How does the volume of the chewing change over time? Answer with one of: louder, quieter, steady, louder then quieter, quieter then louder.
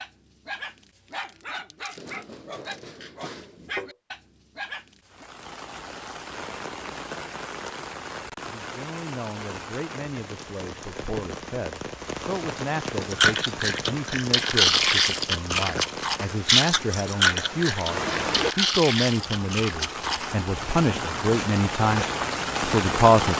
quieter.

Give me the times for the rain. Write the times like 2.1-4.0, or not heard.
5.0-23.3.